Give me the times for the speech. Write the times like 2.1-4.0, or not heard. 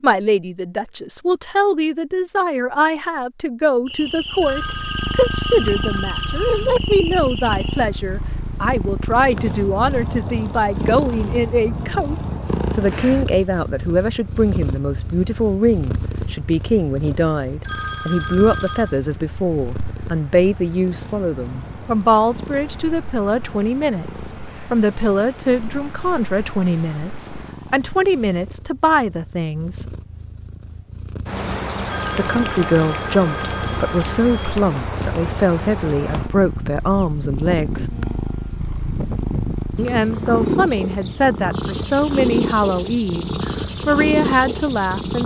0.0-29.9, 32.1-38.0, 39.8-45.2.